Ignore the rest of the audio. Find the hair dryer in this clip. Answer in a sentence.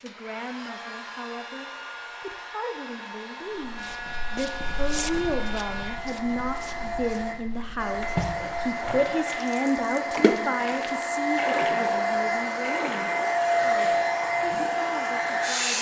The hair dryer can be heard from 0.0 to 15.7 s.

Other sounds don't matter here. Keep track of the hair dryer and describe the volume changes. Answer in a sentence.
The volume of the hair dryer goes up.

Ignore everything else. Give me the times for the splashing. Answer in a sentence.
The splashing can be heard from 8.0 to 14.9 s.